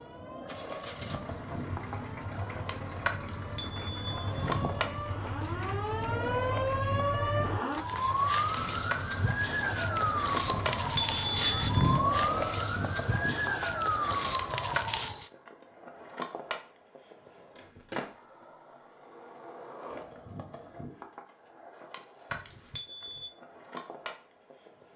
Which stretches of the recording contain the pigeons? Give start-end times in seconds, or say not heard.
not heard.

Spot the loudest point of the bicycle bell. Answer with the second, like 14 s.
12 s.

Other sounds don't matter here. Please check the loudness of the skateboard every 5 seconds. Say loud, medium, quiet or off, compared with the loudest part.
loud, loud, loud, medium, medium.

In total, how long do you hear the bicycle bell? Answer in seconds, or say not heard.
4 s.